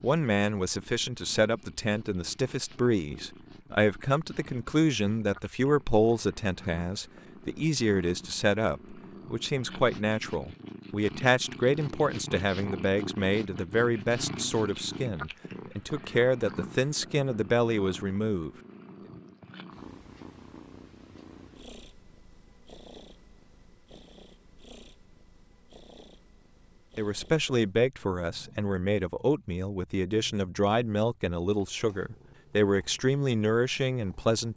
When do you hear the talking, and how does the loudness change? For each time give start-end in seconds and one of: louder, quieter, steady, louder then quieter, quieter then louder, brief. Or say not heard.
0.0-18.5 steady
26.9-34.5 steady.